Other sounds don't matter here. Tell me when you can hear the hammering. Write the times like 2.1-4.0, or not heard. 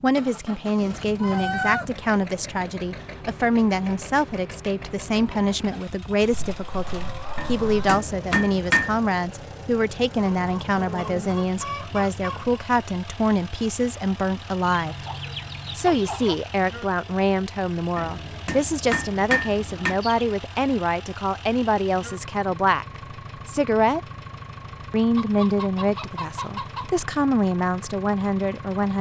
7.3-9.1, 17.9-20.0.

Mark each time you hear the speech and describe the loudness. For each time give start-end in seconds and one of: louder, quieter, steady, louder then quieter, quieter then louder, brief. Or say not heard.
0.0-14.9 steady
15.8-24.0 steady
24.9-28.9 quieter then louder.